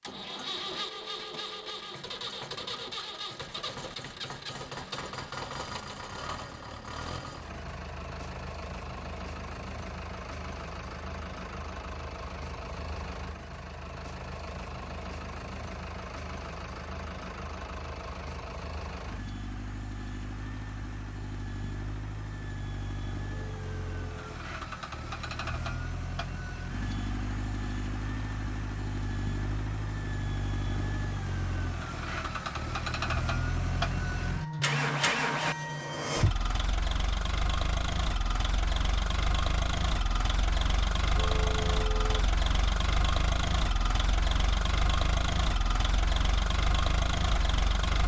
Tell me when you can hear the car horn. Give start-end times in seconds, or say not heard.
0.7-1.9, 23.2-24.3, 41.1-42.3.